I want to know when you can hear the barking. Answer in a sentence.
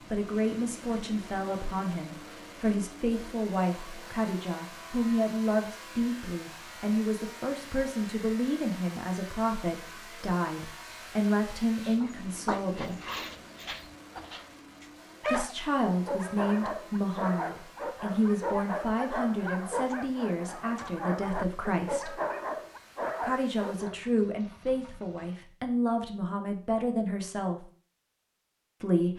You can hear the barking from 11.8 to 24.0 s.